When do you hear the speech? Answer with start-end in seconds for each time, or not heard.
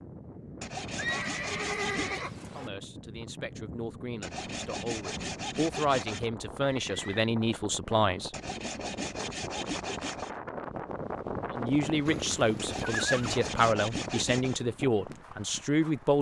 2.5-8.3, 11.5-16.1.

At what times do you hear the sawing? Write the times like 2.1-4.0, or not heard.
0.6-2.2, 4.2-6.3, 8.3-10.3, 12.6-14.6.